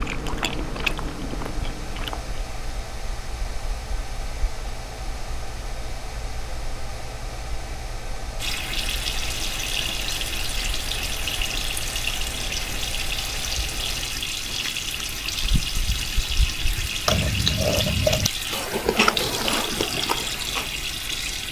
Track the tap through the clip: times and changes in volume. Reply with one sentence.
You can hear the tap from 8.3 to 21.4 s, at a steady volume.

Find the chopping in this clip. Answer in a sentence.
The chopping can't be heard in this clip.